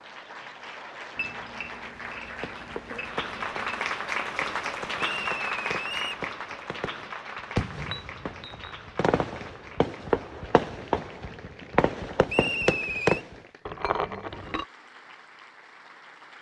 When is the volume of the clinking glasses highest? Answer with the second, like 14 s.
14 s.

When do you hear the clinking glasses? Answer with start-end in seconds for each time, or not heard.
1.1-3.9, 7.8-8.8, 13.7-14.7.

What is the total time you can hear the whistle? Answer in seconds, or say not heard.
2 s.